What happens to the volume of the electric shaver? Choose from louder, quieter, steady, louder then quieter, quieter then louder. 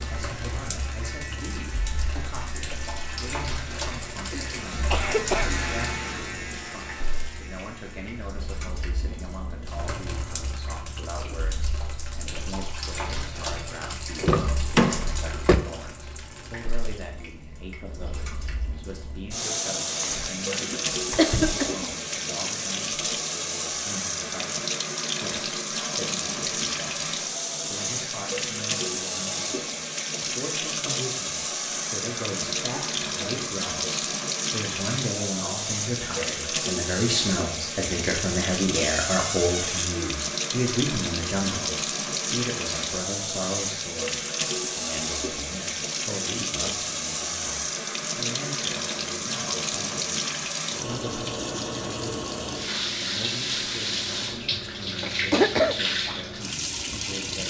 louder then quieter.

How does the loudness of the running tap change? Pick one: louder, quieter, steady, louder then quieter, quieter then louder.
louder.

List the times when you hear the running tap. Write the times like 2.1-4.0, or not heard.
0.0-57.4.